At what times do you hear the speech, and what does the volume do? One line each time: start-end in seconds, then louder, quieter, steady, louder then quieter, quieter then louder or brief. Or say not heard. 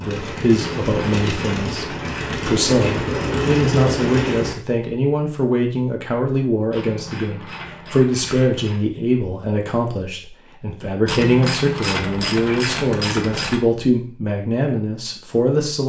0.0-15.8 steady.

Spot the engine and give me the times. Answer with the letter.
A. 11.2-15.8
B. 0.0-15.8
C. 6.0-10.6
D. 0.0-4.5
D.